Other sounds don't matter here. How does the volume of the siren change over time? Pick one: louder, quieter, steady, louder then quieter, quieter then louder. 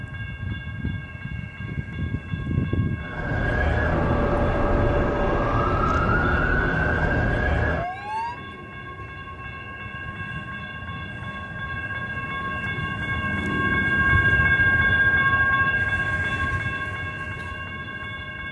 steady.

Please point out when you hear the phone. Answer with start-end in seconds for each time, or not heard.
not heard.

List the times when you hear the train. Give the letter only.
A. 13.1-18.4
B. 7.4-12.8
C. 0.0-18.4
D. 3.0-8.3
C.